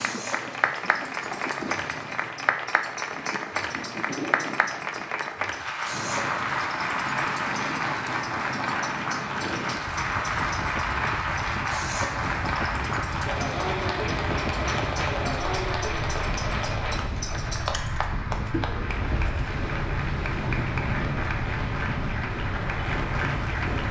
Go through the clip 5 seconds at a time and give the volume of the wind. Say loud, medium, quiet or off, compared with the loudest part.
medium, medium, loud, loud, loud.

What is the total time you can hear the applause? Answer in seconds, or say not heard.
24 s.